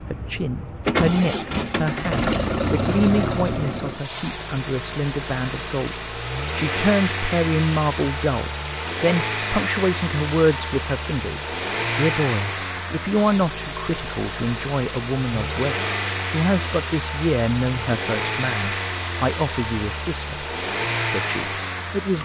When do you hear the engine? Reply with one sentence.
The engine can be heard from 0.0 to 22.2 s.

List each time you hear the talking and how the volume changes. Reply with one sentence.
You can hear the talking from 0.1 to 20.4 s, at a steady volume; and briefly from 21.1 to 22.2 s.